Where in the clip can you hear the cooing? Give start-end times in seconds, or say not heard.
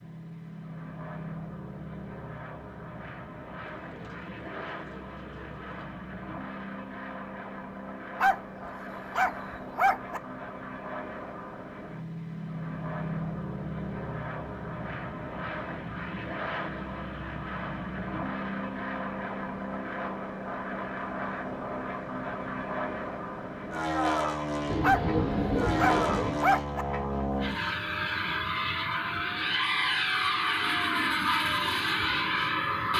3.7-5.9, 24.6-26.4.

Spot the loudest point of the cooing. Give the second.
25 s.